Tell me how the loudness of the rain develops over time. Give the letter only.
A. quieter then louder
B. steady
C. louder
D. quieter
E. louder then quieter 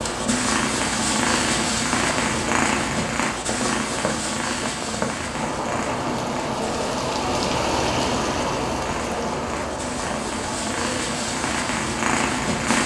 E.